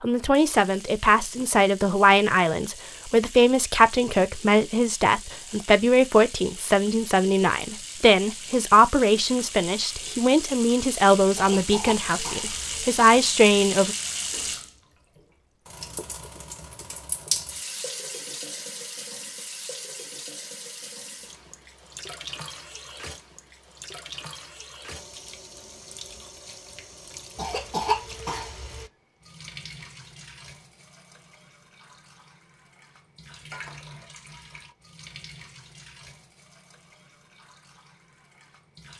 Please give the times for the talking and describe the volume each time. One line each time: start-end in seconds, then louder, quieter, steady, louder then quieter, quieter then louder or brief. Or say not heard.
0.0-13.9 steady.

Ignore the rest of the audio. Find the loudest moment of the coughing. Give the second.
28 s.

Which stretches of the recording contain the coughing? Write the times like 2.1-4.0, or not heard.
11.3-12.8, 27.4-28.9.